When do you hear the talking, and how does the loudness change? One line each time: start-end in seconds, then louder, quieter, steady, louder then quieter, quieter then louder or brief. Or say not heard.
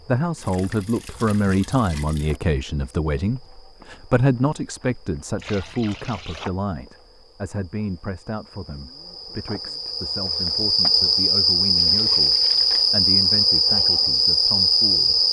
0.0-15.2 quieter.